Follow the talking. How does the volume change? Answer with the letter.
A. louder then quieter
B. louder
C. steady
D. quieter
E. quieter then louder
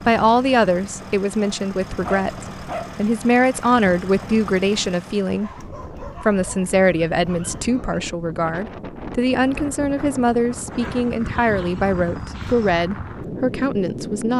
C.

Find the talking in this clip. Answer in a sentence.
The talking can be heard from 0.1 to 14.3 s.